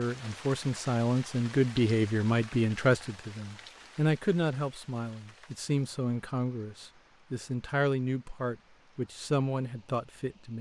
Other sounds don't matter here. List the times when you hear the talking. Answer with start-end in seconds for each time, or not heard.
0.0-10.5.